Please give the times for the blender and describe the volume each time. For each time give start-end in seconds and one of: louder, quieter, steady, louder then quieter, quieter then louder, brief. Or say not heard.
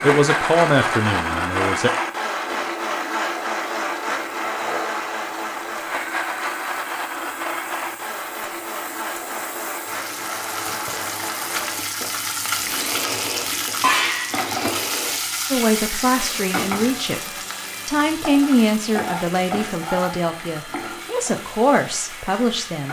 0.0-22.8 quieter.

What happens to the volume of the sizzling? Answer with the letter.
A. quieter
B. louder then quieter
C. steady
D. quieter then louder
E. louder
B.